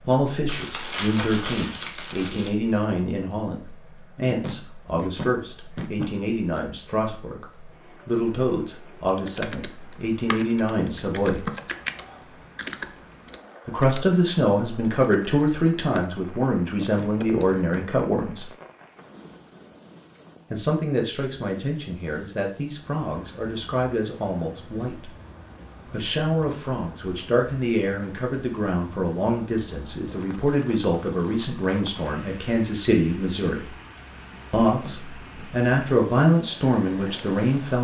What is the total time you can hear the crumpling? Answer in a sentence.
You can hear the crumpling for 2 seconds altogether.